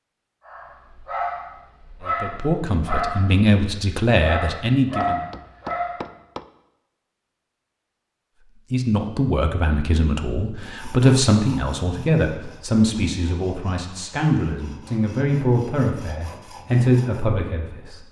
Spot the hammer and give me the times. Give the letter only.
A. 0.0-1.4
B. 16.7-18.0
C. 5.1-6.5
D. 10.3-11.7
C.